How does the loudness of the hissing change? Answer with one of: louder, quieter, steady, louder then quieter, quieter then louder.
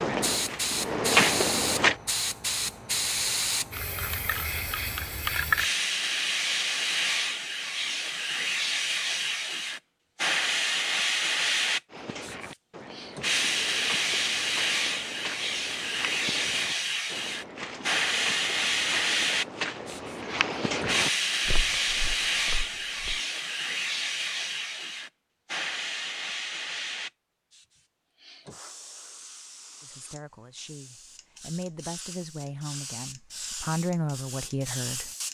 quieter.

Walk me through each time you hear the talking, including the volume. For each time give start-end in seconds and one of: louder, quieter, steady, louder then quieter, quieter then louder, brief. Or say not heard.
29.8-35.1 louder.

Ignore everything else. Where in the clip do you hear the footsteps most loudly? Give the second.
1 s.